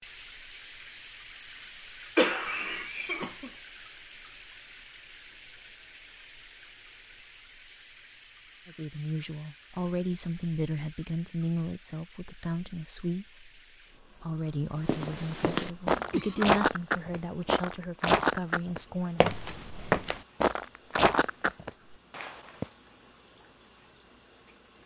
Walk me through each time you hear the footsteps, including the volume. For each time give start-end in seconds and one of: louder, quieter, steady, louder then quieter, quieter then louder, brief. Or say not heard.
14.8-22.6 steady.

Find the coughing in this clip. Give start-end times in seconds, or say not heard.
2.1-3.5, 15.9-16.6.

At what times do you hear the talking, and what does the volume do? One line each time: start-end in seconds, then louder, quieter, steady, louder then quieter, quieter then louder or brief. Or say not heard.
8.7-19.3 steady.